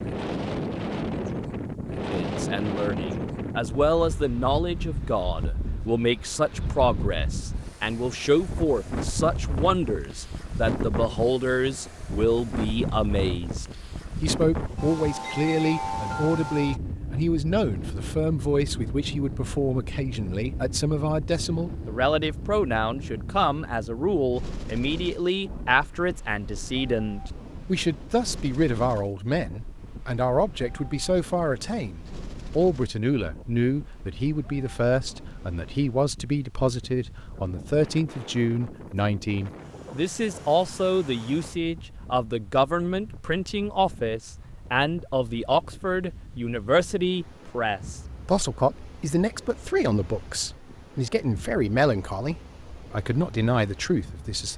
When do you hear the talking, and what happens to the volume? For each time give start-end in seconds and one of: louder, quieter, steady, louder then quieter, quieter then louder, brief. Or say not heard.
2.1-54.5 steady.